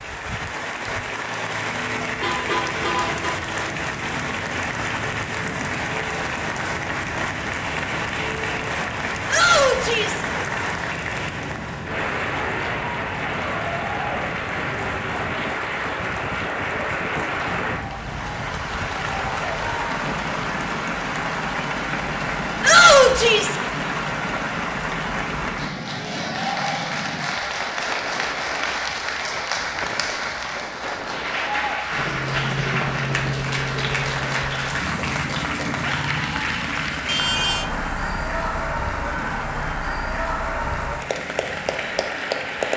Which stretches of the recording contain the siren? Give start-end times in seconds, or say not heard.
not heard.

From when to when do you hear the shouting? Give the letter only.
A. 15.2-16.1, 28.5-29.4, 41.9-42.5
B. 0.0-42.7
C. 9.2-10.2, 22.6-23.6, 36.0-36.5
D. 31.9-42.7
C.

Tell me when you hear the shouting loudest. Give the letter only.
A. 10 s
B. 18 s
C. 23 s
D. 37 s
C.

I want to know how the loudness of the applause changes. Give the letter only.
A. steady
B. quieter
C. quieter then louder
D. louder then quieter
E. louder
A.